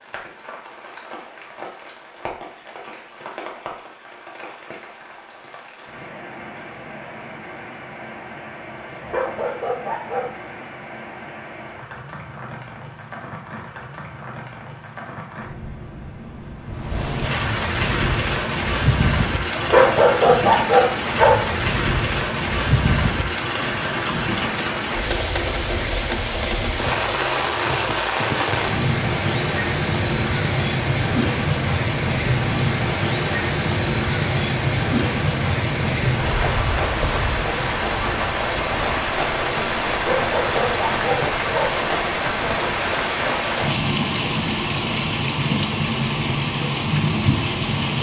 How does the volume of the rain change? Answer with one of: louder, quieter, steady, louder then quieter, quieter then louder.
louder.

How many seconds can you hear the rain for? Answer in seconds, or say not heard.
48 s.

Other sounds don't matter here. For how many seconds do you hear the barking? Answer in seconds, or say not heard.
6 s.